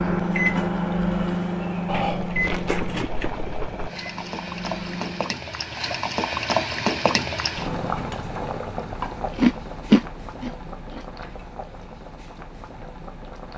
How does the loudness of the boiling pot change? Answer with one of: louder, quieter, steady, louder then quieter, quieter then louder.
louder then quieter.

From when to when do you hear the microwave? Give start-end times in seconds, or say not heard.
0.0-5.3.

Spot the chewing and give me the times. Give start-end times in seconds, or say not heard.
1.9-3.9, 9.3-11.0.